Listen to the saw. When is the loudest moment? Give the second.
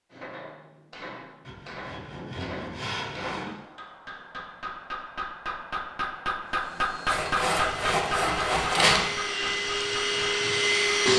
9 s.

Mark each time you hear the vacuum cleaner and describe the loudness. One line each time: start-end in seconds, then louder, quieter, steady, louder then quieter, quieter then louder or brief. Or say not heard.
6.5-11.1 louder.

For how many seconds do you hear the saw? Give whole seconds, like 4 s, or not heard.
4 s.